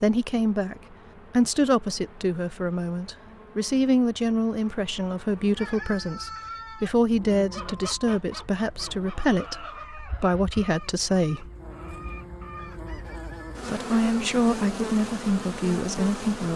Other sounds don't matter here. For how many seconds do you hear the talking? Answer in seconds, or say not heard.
14 s.